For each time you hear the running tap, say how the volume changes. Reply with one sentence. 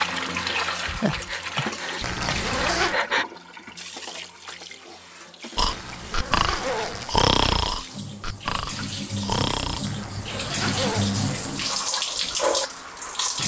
The running tap can be heard from 0.0 to 13.4 s, getting quieter then louder.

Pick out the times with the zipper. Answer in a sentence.
The zipper can be heard from 2.0 to 3.0 s, from 5.7 to 7.2 s and from 9.8 to 11.7 s.